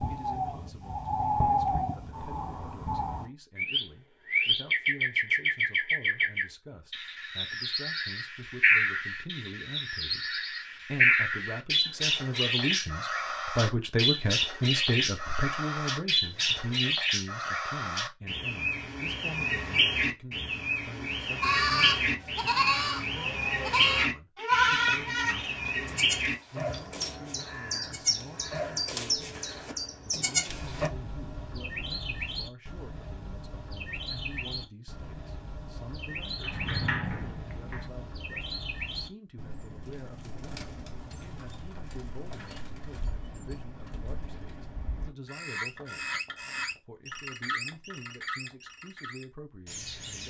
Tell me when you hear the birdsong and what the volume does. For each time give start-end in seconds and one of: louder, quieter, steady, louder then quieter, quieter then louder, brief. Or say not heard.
0.0-50.2 quieter.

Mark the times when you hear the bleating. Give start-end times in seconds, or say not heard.
21.4-30.9.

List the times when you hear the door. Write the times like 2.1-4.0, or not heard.
36.4-37.9.